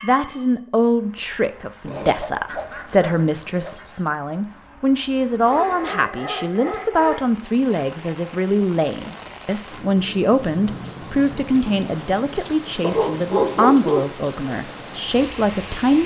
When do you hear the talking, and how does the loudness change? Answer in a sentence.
You can hear the talking from 0.0 to 16.0 s, at a steady volume.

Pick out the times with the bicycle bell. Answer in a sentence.
You can't hear the bicycle bell here.